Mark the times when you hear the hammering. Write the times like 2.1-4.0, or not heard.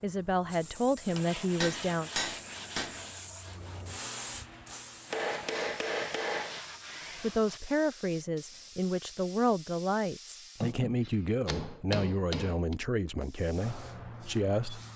1.1-3.1, 5.1-6.6, 10.6-12.8.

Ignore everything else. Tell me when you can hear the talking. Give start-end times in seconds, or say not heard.
0.0-2.1, 7.2-14.8.